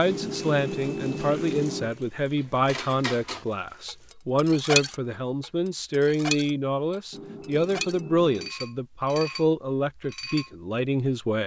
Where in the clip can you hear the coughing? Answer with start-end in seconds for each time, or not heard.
not heard.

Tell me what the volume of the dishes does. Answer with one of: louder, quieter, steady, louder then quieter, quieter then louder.
louder then quieter.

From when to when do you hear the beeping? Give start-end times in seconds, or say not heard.
0.1-1.9, 7.1-8.6.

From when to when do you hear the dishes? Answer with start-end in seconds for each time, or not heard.
2.3-10.5.